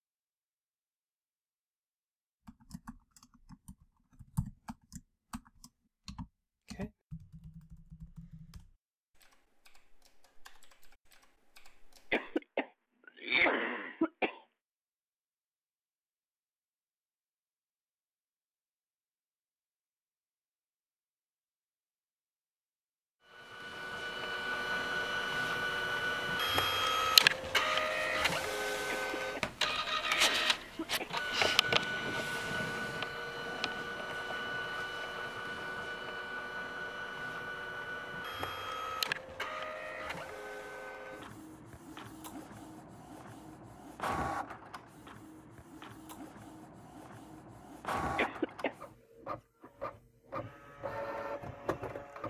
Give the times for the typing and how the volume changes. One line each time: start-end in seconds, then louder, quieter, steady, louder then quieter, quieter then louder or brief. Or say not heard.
2.5-12.4 quieter.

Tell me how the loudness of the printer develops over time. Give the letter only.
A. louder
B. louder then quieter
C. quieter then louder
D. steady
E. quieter
E.